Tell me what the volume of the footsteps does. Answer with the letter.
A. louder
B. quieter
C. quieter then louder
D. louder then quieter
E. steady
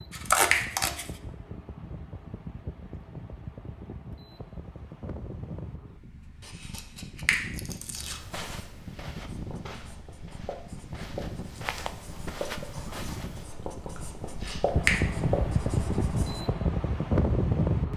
C.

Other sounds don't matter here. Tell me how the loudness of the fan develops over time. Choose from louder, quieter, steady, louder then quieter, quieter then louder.
louder.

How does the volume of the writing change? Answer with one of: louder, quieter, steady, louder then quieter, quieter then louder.
louder.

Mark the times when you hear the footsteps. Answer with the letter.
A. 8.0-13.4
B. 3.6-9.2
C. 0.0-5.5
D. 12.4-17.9
A.